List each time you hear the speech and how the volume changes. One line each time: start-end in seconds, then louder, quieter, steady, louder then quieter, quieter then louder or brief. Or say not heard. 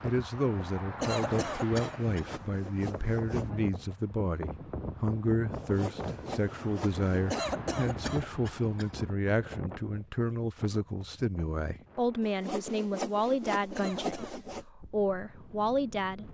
0.0-16.2 steady.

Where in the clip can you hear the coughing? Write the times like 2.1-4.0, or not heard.
1.0-2.3, 7.3-8.9, 13.8-14.4.